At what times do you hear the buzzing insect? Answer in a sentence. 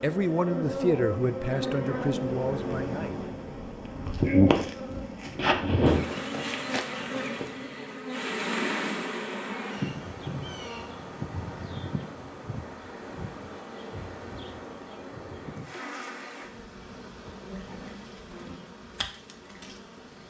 You can hear the buzzing insect from 0.0 to 20.2 s.